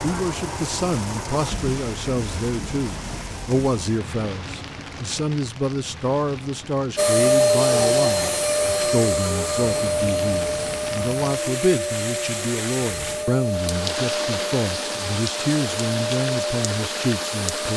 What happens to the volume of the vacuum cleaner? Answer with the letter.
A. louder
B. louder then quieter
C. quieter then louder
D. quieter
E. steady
D.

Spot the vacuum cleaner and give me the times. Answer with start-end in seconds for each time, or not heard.
7.0-17.7.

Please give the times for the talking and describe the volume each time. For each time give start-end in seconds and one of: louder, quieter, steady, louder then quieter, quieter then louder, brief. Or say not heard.
0.0-17.7 steady.